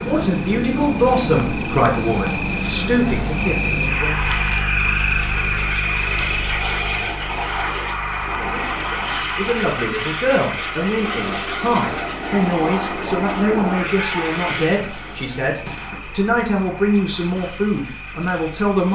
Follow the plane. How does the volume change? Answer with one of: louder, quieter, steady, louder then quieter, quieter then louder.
quieter.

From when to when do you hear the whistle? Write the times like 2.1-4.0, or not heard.
not heard.